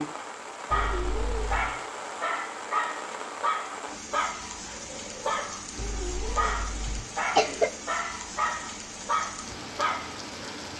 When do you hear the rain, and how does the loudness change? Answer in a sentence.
You can hear the rain from 0.0 to 10.7 s, at a steady volume.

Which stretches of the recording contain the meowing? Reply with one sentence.
The meowing can be heard from 0.7 to 1.8 s and from 5.8 to 7.0 s.